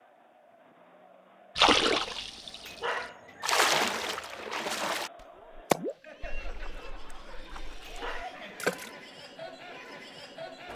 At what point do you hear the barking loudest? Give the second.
3 s.